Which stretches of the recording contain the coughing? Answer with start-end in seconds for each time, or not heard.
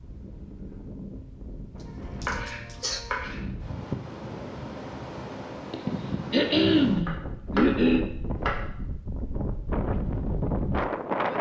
2.2-3.0, 5.7-8.1.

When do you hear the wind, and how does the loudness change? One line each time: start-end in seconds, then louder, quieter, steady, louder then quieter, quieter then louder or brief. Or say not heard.
0.0-11.3 louder.